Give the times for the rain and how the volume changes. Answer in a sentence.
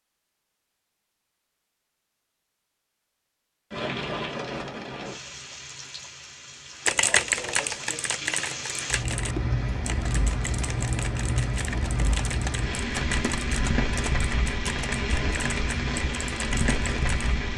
You can hear the rain from 3.7 to 17.5 s, getting louder.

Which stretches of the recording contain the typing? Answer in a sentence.
You can hear the typing from 6.8 to 17.4 s.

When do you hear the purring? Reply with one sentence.
The purring can't be heard in this clip.